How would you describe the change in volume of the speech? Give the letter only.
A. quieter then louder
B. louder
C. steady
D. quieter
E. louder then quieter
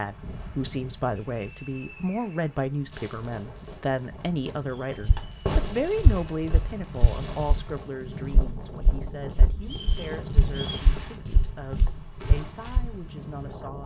D.